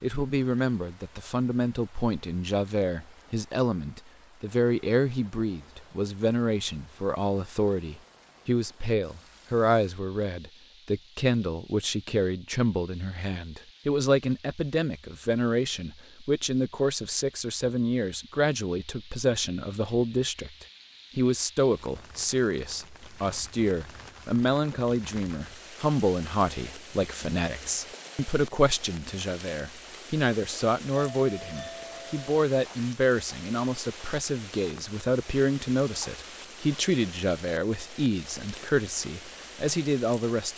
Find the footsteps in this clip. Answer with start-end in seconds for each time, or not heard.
not heard.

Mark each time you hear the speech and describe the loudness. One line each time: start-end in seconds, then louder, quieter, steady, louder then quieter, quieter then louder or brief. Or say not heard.
0.0-40.5 steady.